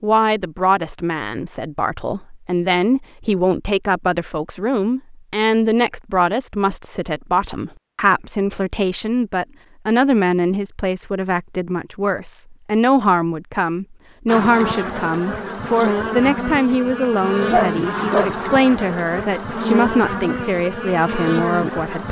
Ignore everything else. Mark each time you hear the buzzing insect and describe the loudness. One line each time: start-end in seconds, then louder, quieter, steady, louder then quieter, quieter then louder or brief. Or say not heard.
14.2-22.0 steady.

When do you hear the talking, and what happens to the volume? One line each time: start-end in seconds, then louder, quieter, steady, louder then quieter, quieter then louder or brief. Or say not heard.
0.0-22.0 steady.